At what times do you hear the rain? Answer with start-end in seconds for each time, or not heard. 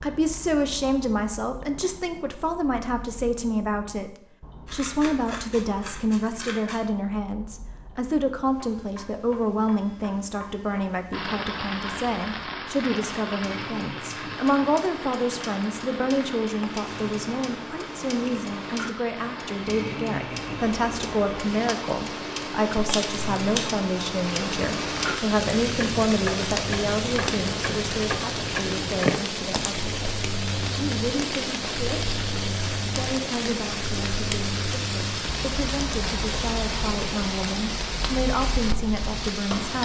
11.1-39.7.